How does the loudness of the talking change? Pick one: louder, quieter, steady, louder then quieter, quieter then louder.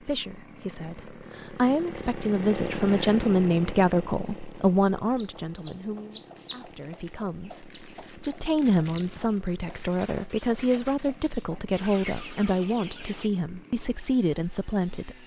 steady.